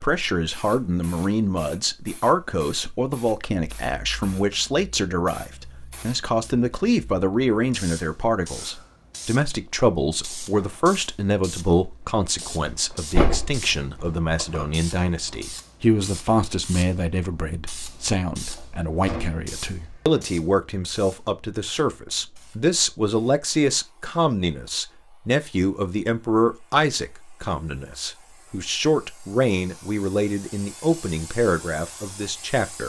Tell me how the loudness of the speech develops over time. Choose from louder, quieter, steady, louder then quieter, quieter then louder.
steady.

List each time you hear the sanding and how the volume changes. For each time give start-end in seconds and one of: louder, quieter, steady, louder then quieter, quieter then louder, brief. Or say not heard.
not heard.